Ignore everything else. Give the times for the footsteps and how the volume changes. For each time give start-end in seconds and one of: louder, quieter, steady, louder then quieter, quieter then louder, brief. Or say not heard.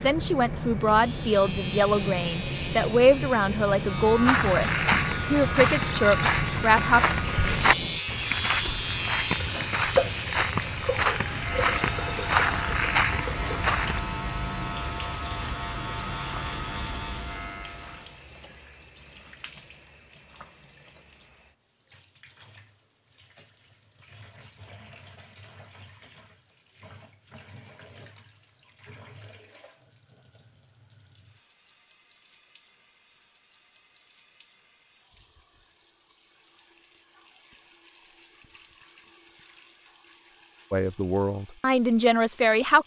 4.2-14.0 steady.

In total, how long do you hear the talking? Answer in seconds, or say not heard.
9 s.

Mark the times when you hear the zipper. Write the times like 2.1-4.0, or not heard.
not heard.